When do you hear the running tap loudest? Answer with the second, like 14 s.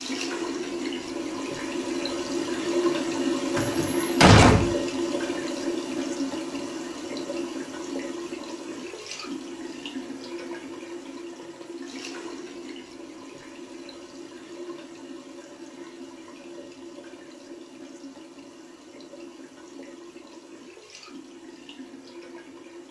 3 s.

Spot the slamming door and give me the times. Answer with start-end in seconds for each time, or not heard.
3.5-4.8.